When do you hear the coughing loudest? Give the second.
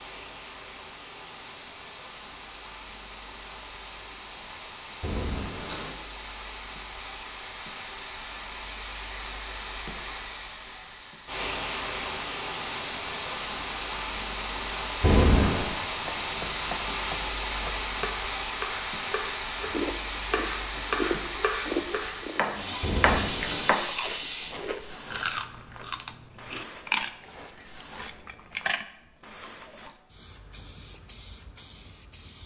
15 s.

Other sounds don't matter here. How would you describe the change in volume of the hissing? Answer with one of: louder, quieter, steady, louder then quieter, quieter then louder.
louder then quieter.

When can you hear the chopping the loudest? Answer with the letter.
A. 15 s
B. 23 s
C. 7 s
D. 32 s
B.